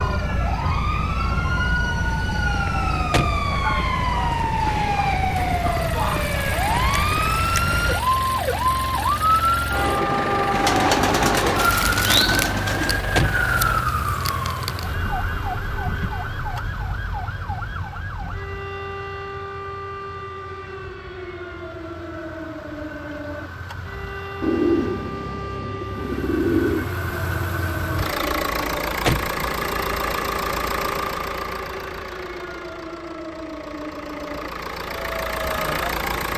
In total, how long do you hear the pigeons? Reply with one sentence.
You can hear the pigeons for 5 seconds altogether.